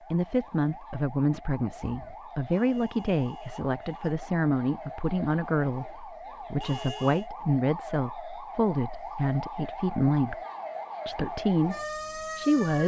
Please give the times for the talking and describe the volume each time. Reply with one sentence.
The talking can be heard from 0.1 to 10.3 s, at a steady volume; and briefly from 11.1 to 12.8 s.